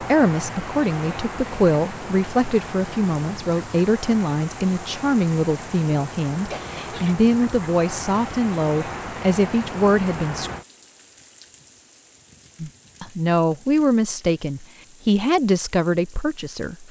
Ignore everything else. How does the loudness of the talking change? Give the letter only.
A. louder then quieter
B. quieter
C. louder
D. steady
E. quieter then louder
D.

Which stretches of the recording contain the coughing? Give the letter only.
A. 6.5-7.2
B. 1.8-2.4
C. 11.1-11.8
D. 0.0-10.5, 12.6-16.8
A.